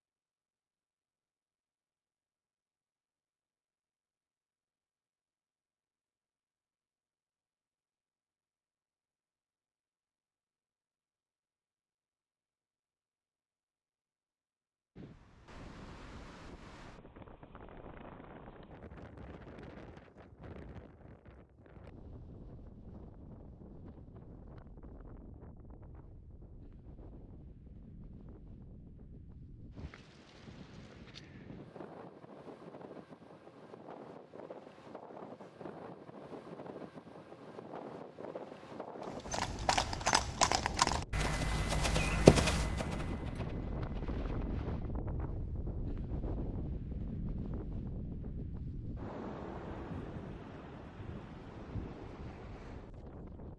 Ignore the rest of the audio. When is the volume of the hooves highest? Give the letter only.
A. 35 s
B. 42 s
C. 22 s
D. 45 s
B.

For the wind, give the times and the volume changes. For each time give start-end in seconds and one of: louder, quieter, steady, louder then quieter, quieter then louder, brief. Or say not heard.
14.9-53.5 louder.